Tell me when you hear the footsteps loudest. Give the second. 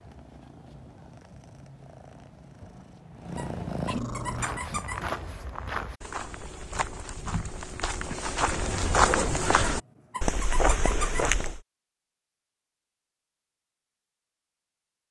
9 s.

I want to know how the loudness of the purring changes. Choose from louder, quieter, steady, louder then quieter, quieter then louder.
louder.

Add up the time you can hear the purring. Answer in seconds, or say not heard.
5 s.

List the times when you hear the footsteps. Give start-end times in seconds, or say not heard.
4.2-11.6.